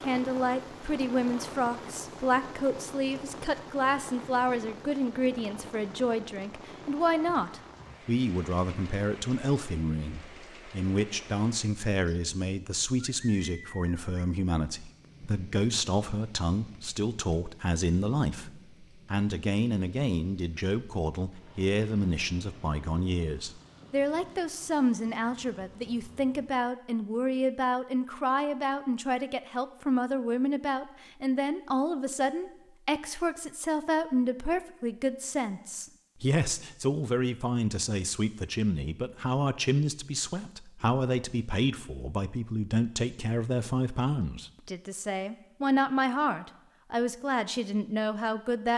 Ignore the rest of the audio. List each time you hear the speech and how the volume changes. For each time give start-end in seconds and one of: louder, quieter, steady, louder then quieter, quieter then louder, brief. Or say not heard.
0.1-48.7 steady.